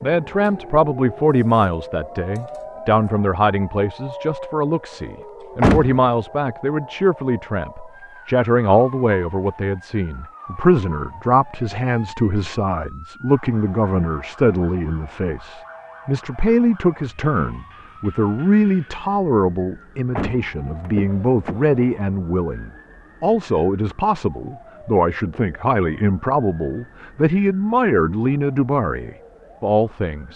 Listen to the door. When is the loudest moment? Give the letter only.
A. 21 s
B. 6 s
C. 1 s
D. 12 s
B.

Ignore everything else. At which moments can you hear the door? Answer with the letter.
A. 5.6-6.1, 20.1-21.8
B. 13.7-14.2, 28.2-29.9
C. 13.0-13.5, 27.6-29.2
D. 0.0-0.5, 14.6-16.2
A.